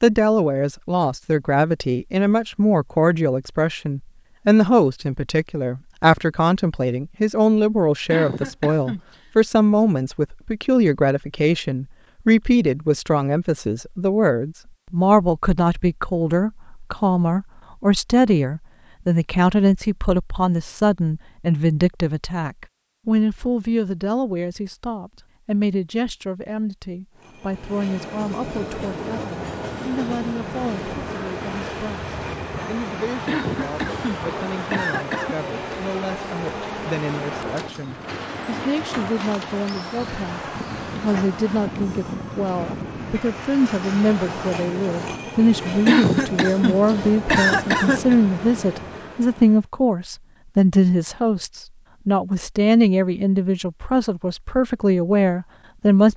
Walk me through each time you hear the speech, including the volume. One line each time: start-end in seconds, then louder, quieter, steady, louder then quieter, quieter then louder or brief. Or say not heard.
0.0-56.1 quieter then louder.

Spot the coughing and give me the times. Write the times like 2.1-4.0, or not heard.
8.1-9.2, 33.2-35.4, 45.9-48.1.